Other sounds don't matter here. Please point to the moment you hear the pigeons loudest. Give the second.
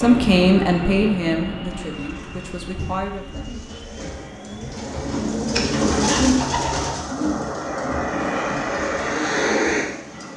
6 s.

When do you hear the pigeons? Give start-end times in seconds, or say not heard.
1.9-10.3.